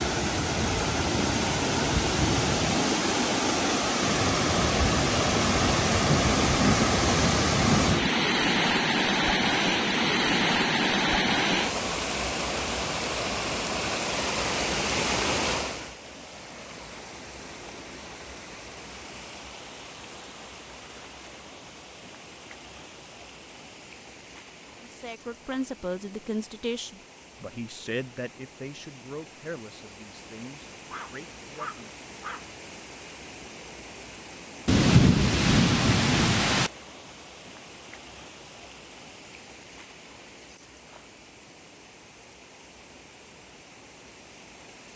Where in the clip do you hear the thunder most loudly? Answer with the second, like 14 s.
35 s.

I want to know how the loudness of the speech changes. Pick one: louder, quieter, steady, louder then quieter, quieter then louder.
quieter.